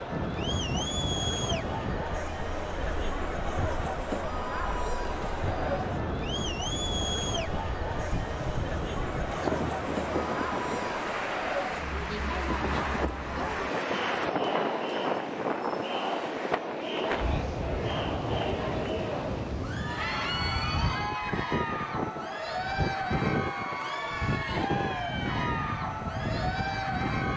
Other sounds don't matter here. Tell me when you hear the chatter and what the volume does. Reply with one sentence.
You can hear the chatter from 0.0 to 27.3 s, at a steady volume.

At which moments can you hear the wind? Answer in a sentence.
The wind can be heard from 0.0 to 27.3 s.